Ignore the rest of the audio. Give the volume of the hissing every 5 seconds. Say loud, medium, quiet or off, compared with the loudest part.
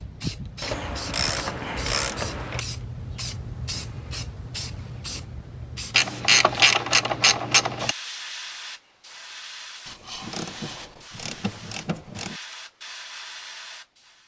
loud, loud, medium.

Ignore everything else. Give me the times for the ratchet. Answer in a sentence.
You can hear the ratchet from 0.6 to 2.6 s, from 5.9 to 8.0 s and from 9.8 to 12.4 s.